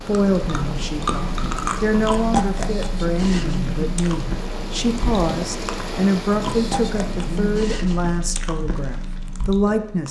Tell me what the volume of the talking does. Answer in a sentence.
The volume of the talking stays about the same.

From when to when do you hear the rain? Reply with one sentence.
The rain can be heard from 0.0 to 7.6 s.